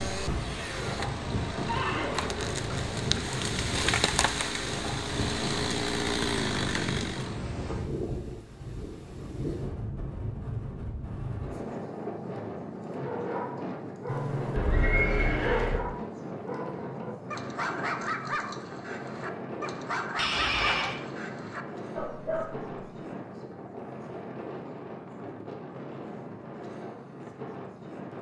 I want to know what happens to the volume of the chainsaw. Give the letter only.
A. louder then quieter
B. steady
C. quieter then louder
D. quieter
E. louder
E.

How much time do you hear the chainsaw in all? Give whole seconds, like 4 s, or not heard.
7 s.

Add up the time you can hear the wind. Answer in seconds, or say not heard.
28 s.